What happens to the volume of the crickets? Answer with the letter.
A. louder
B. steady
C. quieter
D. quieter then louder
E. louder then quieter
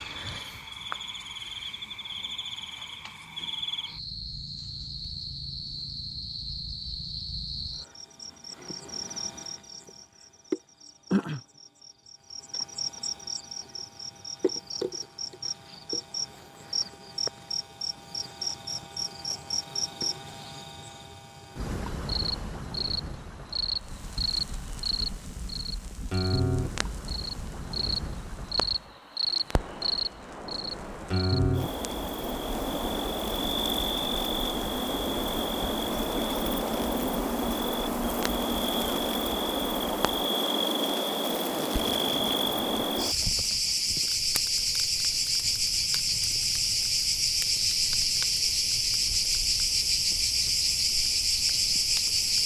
A.